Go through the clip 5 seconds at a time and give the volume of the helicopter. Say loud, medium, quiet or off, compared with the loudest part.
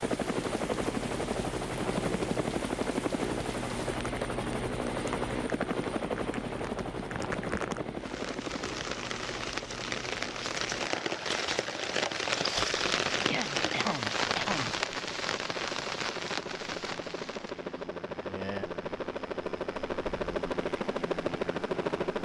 loud, loud, medium, medium, loud.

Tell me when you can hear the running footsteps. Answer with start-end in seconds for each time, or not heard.
not heard.